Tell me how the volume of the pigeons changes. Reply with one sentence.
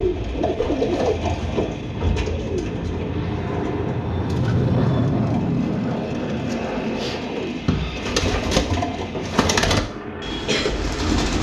The loudness of the pigeons goes down, then up.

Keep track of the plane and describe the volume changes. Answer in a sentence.
The loudness of the plane goes up, then down.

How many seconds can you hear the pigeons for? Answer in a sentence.
The pigeons can be heard for 11 seconds in total.